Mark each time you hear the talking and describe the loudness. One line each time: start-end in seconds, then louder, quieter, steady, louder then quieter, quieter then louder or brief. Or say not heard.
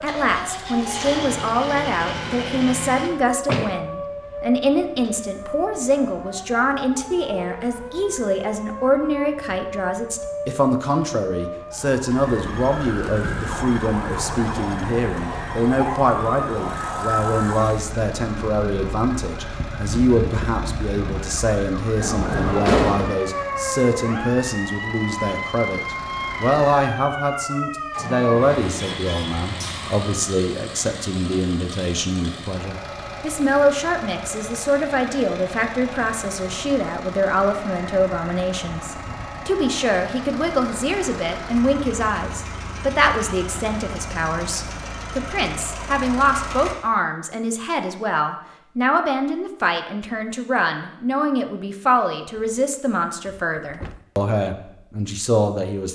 0.0-55.9 steady.